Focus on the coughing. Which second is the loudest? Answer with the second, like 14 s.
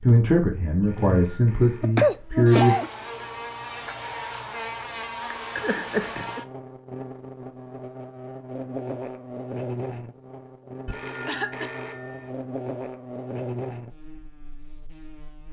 2 s.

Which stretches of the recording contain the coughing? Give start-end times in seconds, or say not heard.
1.9-2.9, 5.5-6.4, 11.2-11.7.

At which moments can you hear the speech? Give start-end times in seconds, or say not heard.
0.0-2.8.